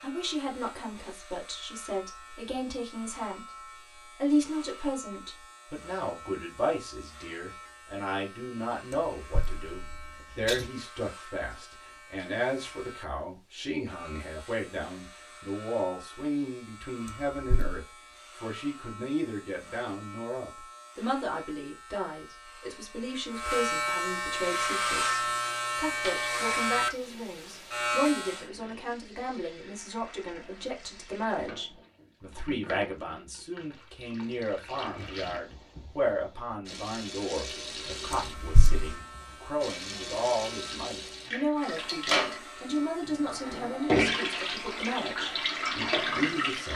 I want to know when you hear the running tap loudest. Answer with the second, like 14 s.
44 s.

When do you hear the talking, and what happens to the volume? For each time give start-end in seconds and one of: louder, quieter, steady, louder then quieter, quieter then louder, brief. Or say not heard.
0.0-46.7 steady.